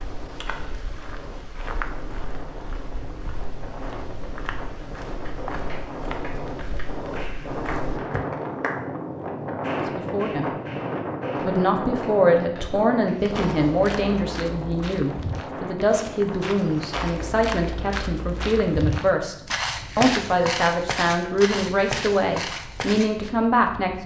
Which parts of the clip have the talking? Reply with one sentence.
The talking can be heard from 9.8 to 10.5 s and from 11.4 to 24.0 s.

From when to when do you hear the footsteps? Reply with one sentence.
The footsteps can be heard from 0.0 to 8.2 s and from 13.1 to 23.3 s.